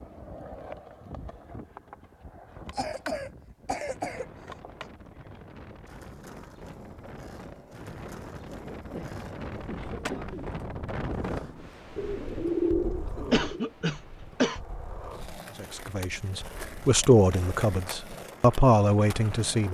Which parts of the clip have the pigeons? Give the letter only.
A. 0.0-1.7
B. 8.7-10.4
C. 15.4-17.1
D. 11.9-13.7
D.